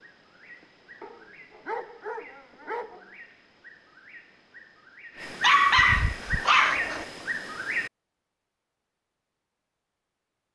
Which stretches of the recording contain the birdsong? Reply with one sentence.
The birdsong can be heard from 0.0 to 7.9 s.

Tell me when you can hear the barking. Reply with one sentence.
The barking can be heard from 1.0 to 3.1 s and from 5.4 to 7.0 s.